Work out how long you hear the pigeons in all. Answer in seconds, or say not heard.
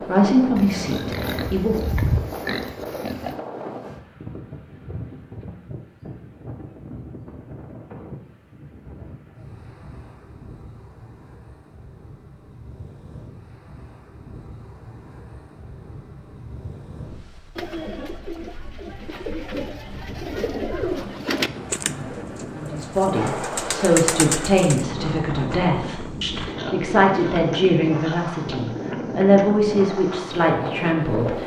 7 s.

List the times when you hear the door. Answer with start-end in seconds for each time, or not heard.
not heard.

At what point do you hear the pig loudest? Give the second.
2 s.